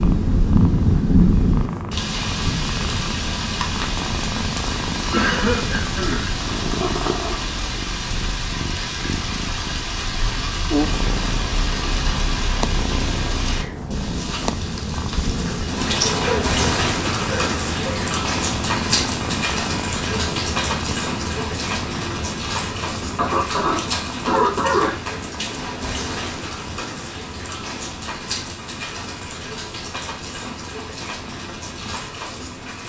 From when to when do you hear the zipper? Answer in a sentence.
The zipper can't be heard in this clip.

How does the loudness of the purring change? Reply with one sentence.
The loudness of the purring goes down.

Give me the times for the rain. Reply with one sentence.
The rain can be heard from 0.0 to 32.8 s.